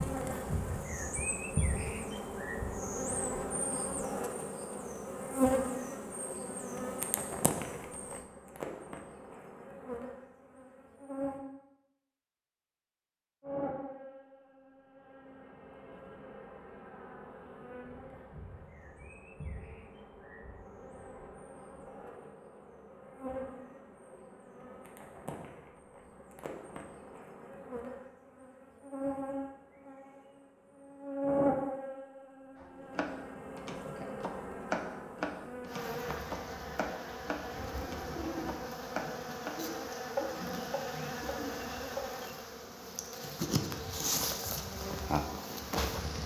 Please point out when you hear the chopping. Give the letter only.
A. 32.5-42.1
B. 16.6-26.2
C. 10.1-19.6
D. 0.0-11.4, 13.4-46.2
A.